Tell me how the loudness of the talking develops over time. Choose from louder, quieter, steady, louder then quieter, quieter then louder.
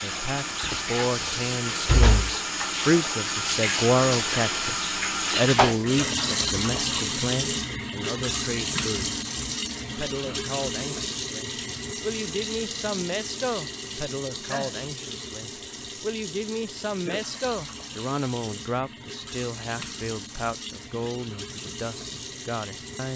quieter.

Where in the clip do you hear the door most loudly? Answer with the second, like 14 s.
2 s.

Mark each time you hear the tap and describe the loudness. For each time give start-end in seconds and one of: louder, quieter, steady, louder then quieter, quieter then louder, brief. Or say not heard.
0.0-23.1 quieter.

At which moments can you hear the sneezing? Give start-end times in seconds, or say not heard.
14.5-14.9.